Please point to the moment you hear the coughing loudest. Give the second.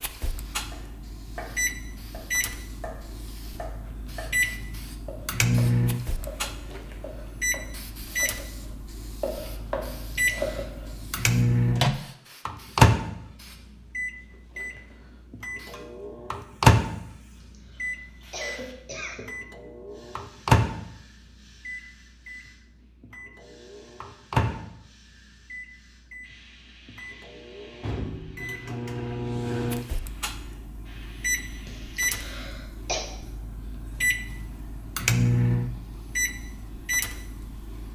33 s.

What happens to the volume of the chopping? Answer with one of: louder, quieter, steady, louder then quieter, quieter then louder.
louder.